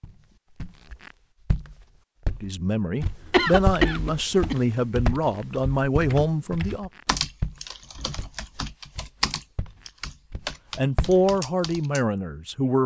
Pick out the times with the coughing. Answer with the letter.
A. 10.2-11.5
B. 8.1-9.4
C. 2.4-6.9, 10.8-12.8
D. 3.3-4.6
D.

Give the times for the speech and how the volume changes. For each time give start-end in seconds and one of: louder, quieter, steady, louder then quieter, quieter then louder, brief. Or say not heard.
2.4-6.9 steady
10.8-12.8 brief.